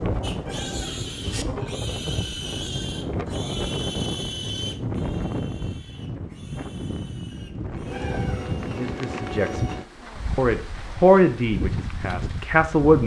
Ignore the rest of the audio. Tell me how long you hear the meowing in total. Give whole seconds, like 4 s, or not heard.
2 s.